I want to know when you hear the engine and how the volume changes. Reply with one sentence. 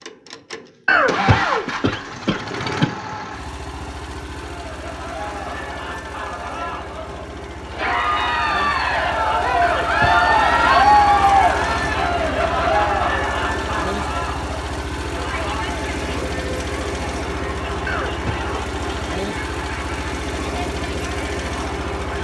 The engine can be heard from 0.0 to 22.1 s, getting quieter then louder.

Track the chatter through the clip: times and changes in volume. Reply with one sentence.
You can hear the chatter from 4.5 to 22.1 s, getting louder then quieter.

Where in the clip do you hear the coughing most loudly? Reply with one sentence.
The loudest moment of the coughing is at 1 second.